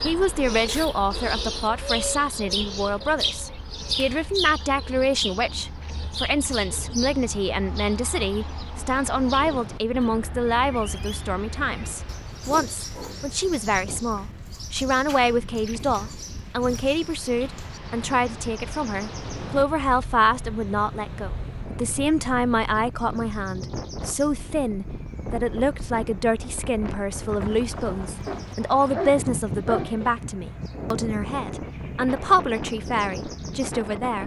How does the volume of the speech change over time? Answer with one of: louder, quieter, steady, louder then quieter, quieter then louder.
steady.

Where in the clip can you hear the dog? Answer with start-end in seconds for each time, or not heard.
28.2-30.1.